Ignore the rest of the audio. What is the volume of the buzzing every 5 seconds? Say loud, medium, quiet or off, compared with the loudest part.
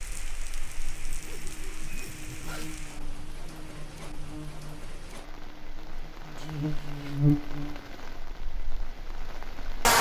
quiet, loud.